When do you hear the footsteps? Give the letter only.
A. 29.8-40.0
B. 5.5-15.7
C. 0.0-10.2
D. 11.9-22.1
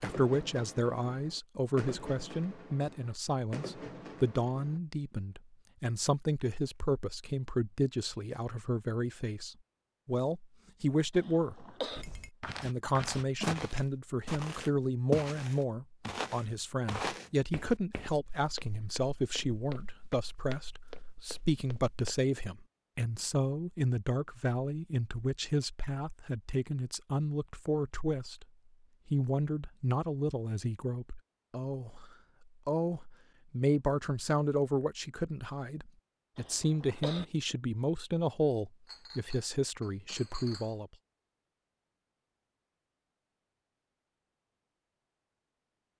D.